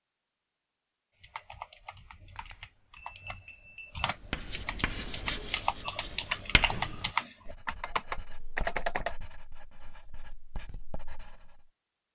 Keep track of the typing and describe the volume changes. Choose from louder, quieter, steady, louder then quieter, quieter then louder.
louder.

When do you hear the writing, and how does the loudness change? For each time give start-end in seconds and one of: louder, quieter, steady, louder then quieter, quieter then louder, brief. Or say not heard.
4.0-11.7 quieter.